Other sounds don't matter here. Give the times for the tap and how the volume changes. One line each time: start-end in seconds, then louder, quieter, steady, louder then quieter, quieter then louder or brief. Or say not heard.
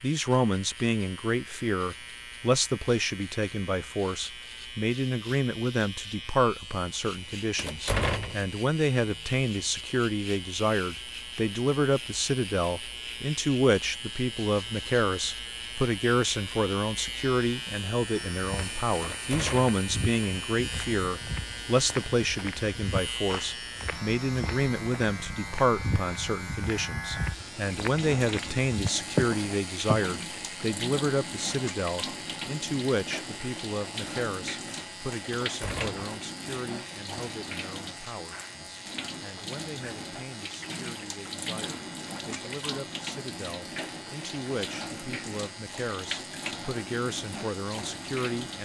27.3-48.6 steady.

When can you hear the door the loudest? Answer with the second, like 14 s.
8 s.